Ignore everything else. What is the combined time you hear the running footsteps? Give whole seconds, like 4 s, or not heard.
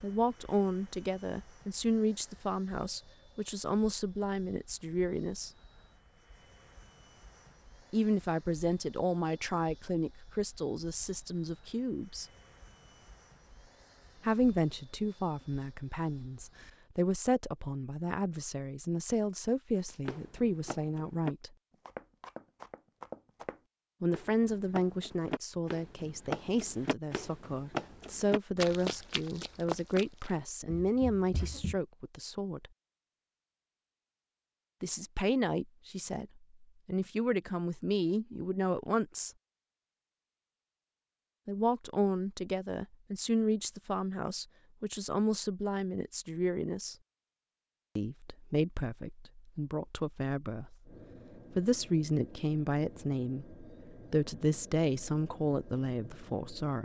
12 s.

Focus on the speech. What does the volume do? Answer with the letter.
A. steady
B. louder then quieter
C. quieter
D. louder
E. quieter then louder
A.